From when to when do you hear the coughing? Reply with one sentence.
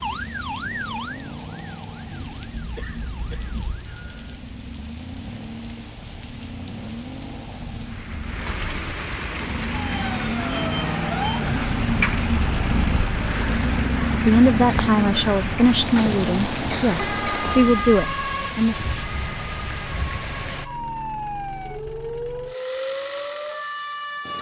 The coughing can be heard from 2.5 to 3.8 s and from 16.7 to 17.4 s.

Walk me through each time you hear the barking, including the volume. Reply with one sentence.
The barking can't be heard in this clip.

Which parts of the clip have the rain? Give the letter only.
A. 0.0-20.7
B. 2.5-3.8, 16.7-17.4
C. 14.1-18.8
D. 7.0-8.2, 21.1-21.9
A.